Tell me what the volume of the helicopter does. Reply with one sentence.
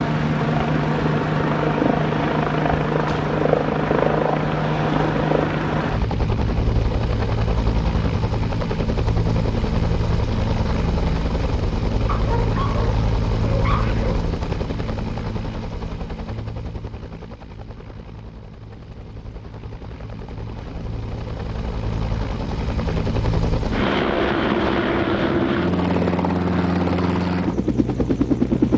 The loudness of the helicopter goes down, then up.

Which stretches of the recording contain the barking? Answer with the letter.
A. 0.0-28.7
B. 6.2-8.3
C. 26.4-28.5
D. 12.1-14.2
D.